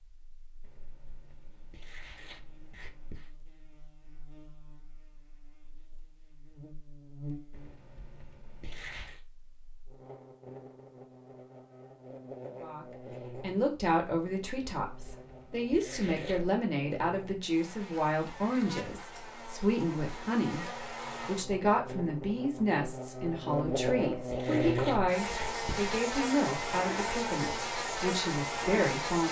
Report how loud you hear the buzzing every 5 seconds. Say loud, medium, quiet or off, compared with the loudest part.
quiet, quiet, quiet, quiet, loud, loud.